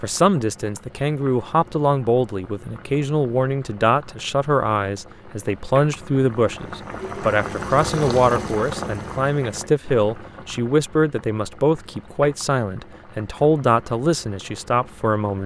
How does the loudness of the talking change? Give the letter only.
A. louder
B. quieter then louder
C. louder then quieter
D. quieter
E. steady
E.